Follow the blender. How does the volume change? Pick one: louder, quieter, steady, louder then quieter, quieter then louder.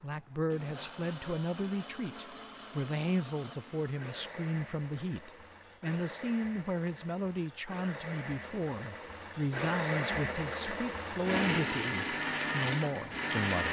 louder.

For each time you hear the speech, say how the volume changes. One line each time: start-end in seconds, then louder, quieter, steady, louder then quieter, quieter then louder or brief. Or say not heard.
0.0-13.6 steady.